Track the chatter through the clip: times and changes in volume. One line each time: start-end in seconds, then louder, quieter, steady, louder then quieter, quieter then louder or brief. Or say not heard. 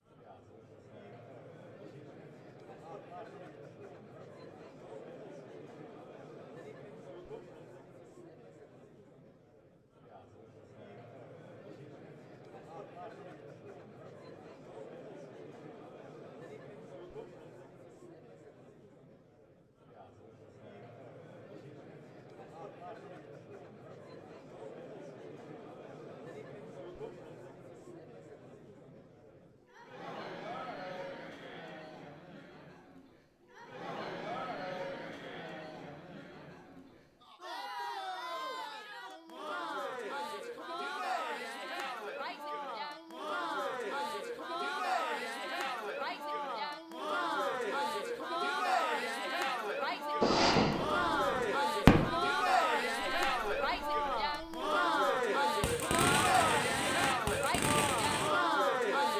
0.1-59.1 louder.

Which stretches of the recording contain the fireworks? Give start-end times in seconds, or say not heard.
50.2-52.1, 53.0-54.7, 55.6-58.3.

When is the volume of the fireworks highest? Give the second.
52 s.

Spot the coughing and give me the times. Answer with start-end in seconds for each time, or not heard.
not heard.